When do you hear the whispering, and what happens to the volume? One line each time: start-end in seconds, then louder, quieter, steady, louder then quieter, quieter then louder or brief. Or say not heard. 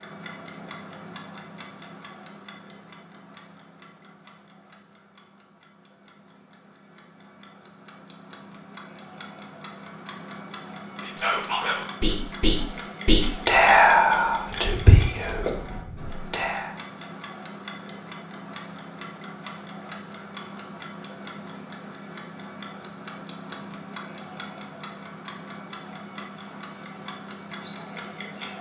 11.0-16.8 louder then quieter.